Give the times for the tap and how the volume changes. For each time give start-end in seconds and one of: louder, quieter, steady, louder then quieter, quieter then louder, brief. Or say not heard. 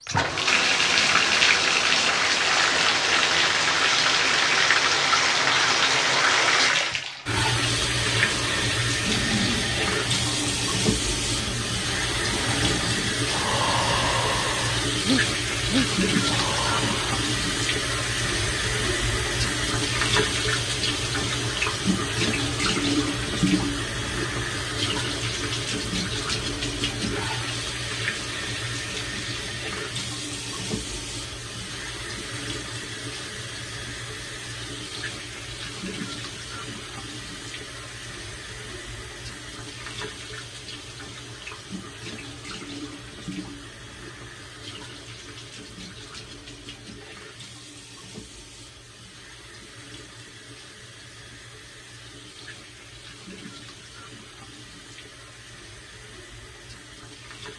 0.0-57.5 quieter.